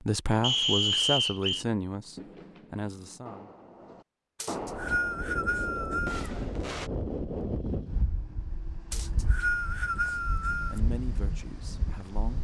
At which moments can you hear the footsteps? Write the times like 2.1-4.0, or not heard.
not heard.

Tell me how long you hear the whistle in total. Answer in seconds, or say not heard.
5 s.